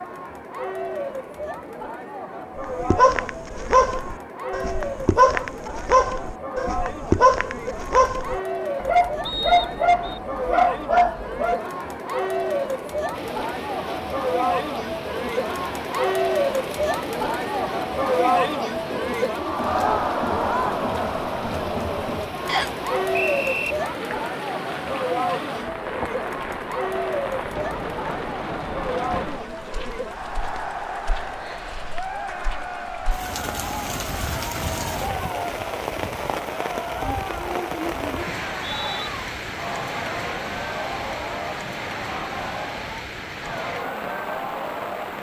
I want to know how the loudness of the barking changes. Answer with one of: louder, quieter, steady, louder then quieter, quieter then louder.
steady.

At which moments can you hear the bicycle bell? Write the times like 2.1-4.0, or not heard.
not heard.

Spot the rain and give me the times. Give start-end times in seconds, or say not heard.
13.1-45.1.